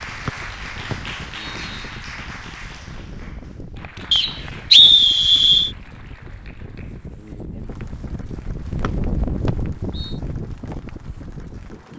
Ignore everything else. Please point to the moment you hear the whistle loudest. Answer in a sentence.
The volume of the whistle peaks at 5 seconds.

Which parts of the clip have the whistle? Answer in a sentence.
The whistle can be heard from 0.2 to 1.9 s, from 4.1 to 5.7 s and from 8.8 to 10.2 s.